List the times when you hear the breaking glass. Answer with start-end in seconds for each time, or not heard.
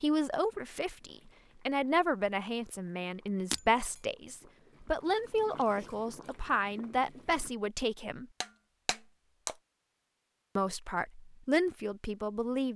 3.5-4.0, 8.4-9.6.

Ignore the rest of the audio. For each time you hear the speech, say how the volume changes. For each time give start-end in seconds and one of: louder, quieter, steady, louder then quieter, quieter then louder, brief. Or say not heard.
0.0-8.2 steady
10.6-12.7 brief.